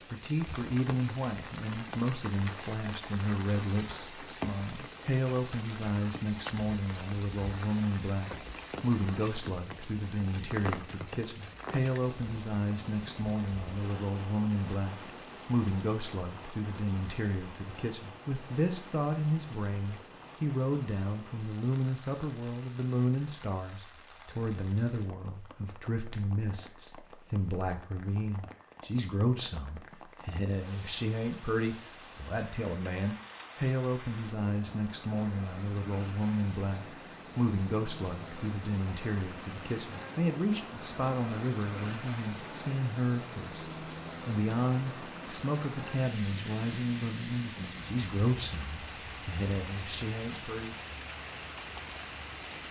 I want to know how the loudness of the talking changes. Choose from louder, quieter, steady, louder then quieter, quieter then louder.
steady.